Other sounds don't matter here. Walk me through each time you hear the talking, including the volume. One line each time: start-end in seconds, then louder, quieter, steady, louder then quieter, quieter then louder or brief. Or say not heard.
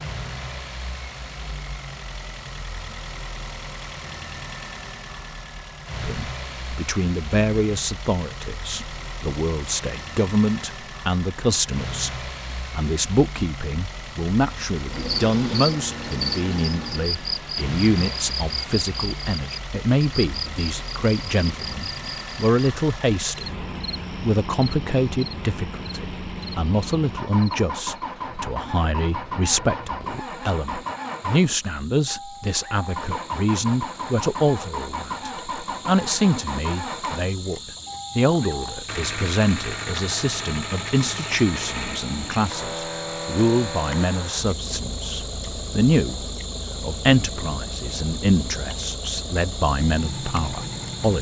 6.0-51.1 steady.